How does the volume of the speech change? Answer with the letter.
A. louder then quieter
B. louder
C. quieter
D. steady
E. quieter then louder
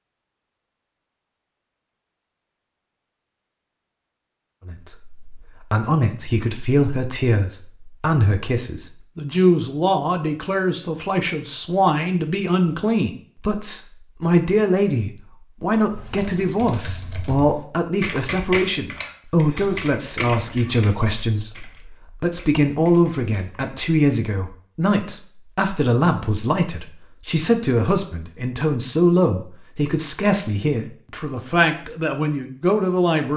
D.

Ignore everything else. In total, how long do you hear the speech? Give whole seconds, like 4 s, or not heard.
29 s.